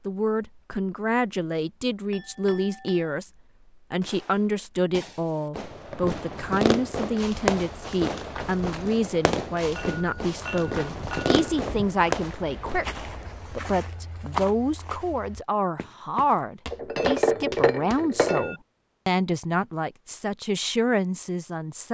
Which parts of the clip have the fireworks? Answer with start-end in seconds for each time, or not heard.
4.0-12.8.